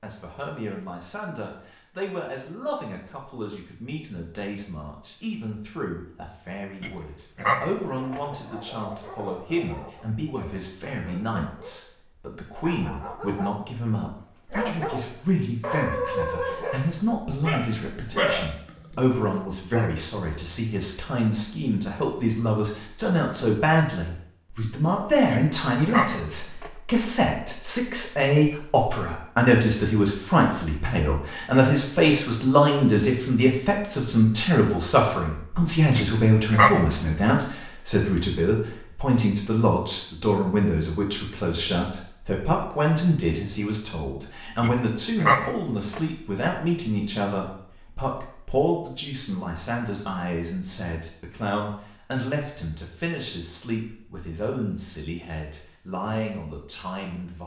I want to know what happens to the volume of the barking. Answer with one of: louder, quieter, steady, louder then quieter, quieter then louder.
louder.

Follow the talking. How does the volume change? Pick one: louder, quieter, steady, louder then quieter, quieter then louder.
louder then quieter.